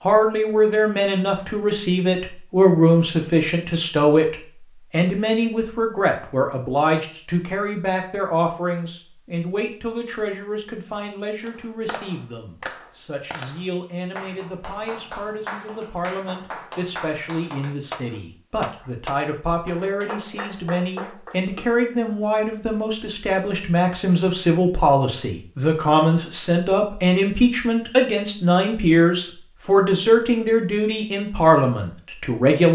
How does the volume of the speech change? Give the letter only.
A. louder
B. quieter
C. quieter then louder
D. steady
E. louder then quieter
C.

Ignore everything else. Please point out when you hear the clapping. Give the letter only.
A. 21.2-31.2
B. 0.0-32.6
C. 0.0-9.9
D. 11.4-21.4
D.